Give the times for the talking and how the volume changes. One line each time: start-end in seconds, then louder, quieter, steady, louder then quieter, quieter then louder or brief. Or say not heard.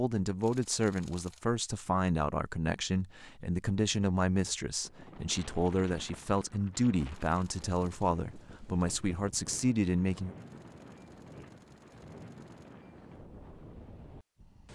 0.0-10.3 steady.